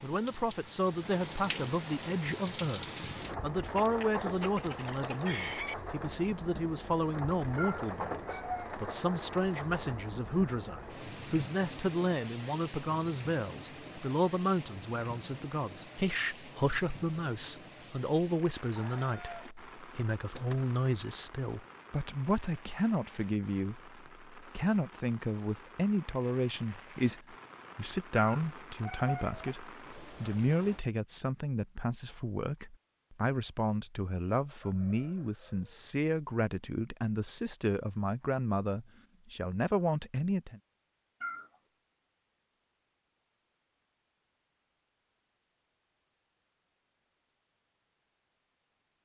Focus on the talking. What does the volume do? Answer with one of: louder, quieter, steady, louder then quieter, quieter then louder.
steady.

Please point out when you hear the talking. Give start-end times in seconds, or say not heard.
0.0-40.6.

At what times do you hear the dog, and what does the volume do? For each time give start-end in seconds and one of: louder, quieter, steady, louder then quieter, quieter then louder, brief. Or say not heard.
not heard.